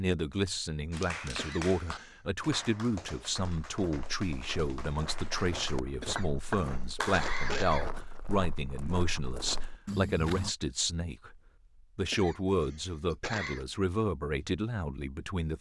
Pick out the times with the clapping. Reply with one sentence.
The clapping can be heard from 0.9 to 7.5 s.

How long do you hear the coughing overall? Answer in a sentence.
You can hear the coughing for 4 seconds altogether.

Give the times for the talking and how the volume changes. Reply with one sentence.
The talking can be heard from 0.0 to 15.5 s, at a steady volume.